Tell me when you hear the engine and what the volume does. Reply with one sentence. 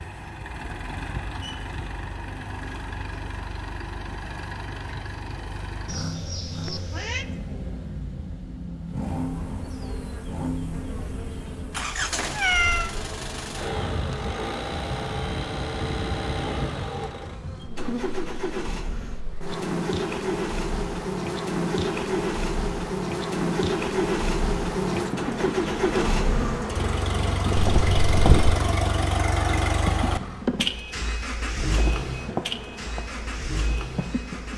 The engine can be heard from 0.0 to 34.5 s, getting louder.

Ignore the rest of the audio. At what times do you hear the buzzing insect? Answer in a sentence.
The buzzing insect can be heard from 9.1 to 34.5 s.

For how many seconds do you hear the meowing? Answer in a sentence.
You can hear the meowing for 3 seconds altogether.